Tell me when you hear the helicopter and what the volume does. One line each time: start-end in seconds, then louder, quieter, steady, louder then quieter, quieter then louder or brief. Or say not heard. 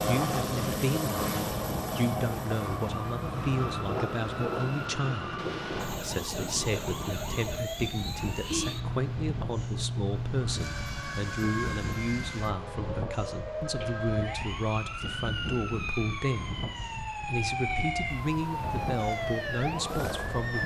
0.0-4.9 quieter
18.6-20.6 brief.